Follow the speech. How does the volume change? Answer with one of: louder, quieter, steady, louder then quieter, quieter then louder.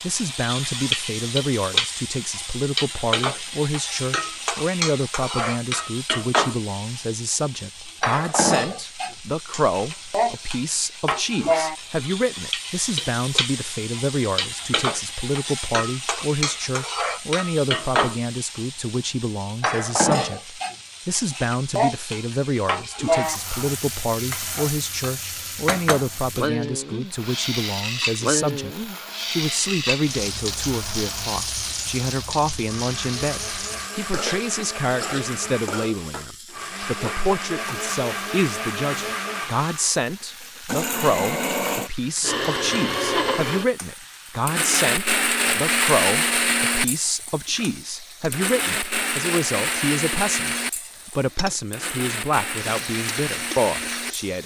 steady.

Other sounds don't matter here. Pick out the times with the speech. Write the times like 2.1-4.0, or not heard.
0.0-54.4.